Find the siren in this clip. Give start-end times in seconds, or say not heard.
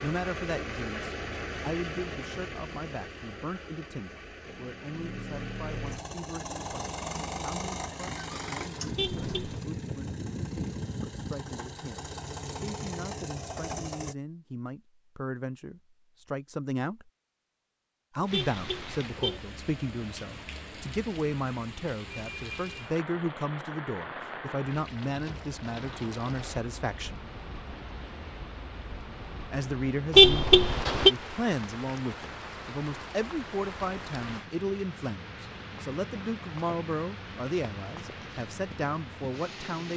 not heard.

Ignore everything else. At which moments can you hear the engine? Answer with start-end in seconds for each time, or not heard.
0.0-14.2.